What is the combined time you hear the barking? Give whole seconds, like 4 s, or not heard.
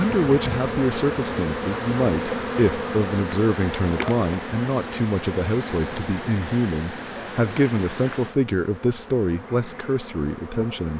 not heard.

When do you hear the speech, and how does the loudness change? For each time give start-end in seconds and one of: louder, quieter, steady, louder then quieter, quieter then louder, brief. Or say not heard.
0.0-10.9 steady.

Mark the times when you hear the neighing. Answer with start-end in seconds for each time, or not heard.
not heard.